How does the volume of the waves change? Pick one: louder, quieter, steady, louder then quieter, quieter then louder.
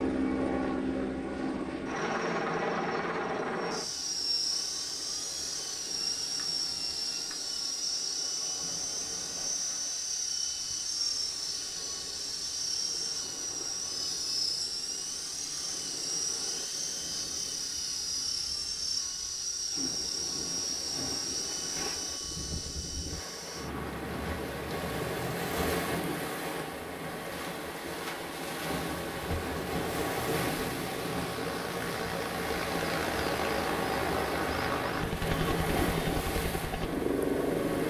louder.